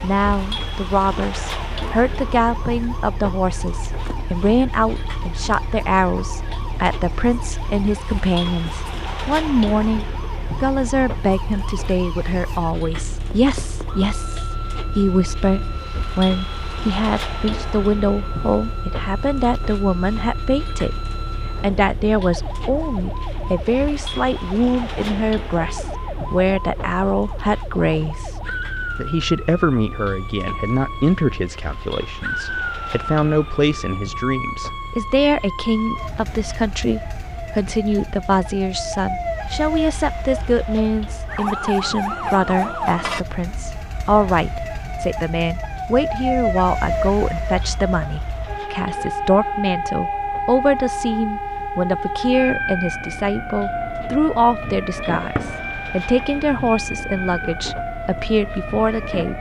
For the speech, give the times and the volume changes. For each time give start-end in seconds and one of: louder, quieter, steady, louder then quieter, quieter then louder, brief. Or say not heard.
0.0-20.9 steady
21.6-59.3 steady.